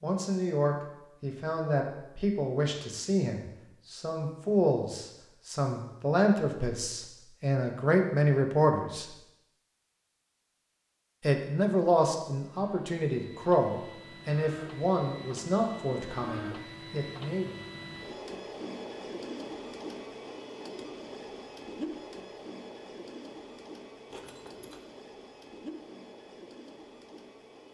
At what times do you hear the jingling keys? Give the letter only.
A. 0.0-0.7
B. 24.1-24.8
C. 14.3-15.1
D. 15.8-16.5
B.